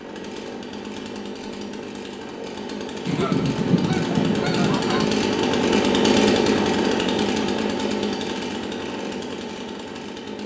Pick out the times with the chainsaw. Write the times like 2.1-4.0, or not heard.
0.0-10.4.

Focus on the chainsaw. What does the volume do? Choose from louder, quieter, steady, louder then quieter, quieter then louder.
louder then quieter.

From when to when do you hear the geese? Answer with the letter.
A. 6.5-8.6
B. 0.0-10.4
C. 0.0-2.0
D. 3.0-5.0
D.